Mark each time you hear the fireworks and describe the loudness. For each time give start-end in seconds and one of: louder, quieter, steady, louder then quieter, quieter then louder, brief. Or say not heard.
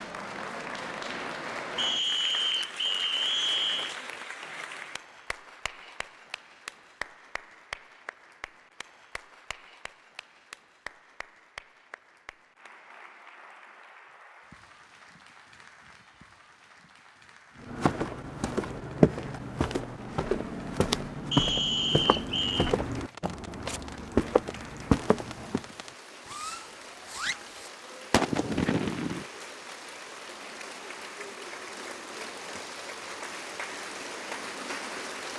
22.4-29.2 louder.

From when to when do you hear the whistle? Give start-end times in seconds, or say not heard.
1.8-4.0, 21.3-22.8.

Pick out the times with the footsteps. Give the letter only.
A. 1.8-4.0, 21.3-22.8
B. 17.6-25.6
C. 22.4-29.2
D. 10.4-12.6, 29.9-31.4
B.